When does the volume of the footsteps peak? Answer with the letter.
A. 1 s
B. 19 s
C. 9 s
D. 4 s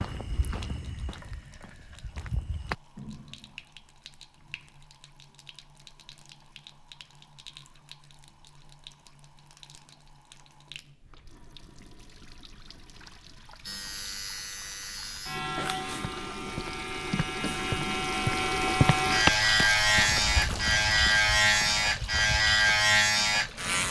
B.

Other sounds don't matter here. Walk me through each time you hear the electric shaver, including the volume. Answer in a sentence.
The electric shaver can be heard from 13.7 to 23.8 s, getting louder.